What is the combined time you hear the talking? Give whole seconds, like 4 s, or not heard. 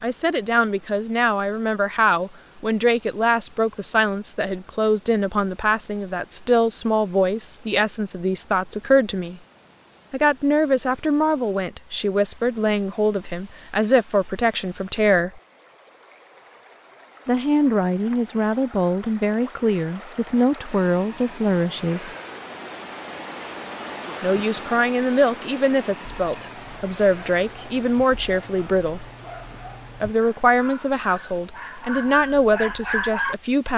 28 s.